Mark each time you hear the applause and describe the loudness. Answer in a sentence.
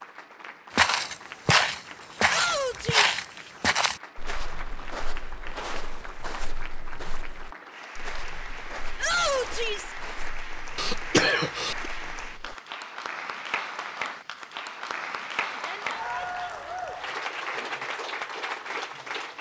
You can hear the applause from 0.0 to 19.3 s, getting louder.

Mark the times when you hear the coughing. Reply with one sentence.
You can hear the coughing from 10.8 to 11.9 s.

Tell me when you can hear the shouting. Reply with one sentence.
The shouting can be heard from 2.2 to 3.1 s, from 8.9 to 9.9 s and from 15.5 to 16.6 s.